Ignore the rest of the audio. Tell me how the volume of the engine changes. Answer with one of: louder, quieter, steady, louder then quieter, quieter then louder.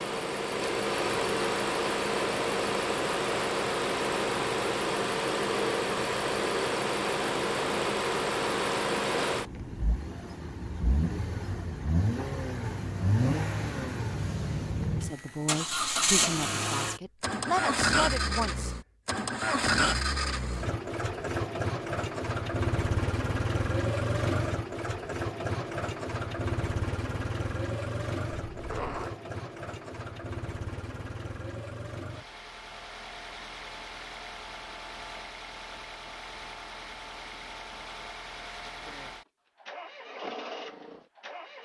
quieter.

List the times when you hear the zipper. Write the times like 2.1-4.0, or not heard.
28.3-29.1.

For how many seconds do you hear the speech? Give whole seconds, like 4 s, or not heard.
4 s.